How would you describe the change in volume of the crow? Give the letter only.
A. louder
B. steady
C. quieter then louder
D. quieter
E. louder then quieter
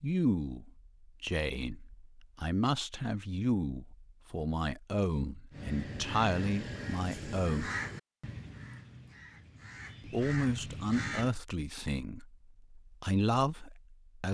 C.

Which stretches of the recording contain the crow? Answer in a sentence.
You can hear the crow from 5.5 to 11.3 s.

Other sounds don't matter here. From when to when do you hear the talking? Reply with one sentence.
You can hear the talking from 0.0 to 7.7 s and from 10.0 to 14.2 s.